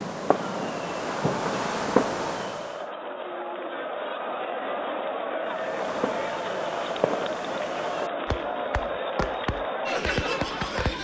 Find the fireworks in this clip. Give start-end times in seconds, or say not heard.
0.0-2.9, 5.5-10.9.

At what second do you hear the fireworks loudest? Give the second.
2 s.